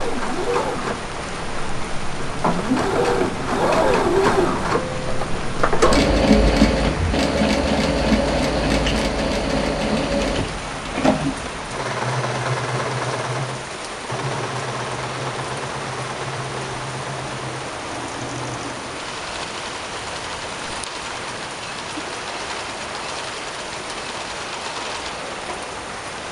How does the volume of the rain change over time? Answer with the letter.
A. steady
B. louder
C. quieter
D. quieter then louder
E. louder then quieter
A.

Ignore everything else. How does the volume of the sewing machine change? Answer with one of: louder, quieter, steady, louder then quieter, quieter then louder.
quieter.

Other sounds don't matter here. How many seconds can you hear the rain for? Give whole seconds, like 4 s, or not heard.
26 s.